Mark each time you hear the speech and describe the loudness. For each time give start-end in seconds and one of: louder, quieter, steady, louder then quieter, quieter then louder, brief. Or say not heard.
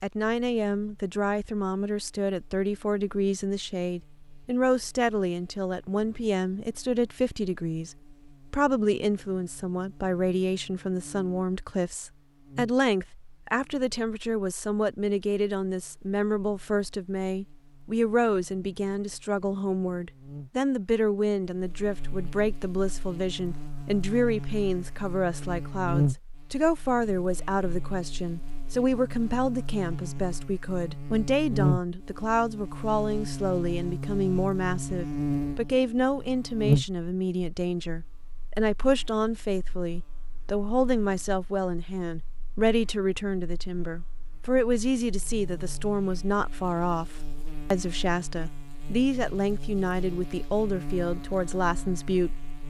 0.0-52.5 steady.